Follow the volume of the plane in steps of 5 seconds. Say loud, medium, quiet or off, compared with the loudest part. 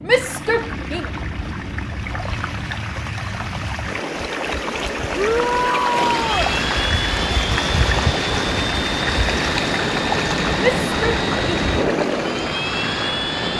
medium, loud, loud.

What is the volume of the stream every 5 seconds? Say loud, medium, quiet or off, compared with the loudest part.
medium, loud, loud.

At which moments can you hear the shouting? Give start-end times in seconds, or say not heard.
0.1-1.1, 5.2-6.5, 10.6-11.7.